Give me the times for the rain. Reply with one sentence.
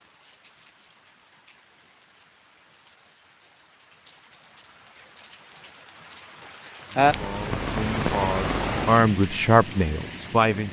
You can hear the rain from 0.0 to 10.6 s.